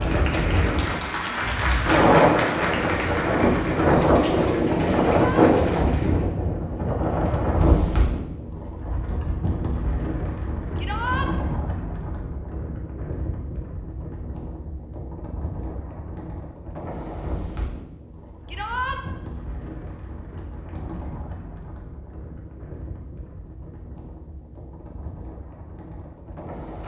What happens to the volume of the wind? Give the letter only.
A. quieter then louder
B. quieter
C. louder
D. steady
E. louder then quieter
B.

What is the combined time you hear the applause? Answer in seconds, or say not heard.
6 s.